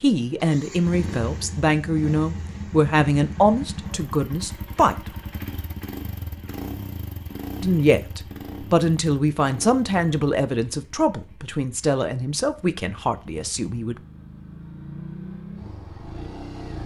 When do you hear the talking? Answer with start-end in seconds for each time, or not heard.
0.0-5.0, 7.6-13.9.